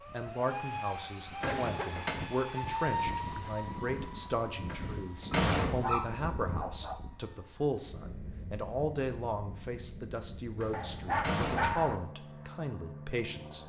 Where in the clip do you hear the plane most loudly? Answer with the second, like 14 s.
3 s.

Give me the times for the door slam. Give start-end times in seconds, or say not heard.
1.4-2.1, 4.7-6.0, 10.6-11.8.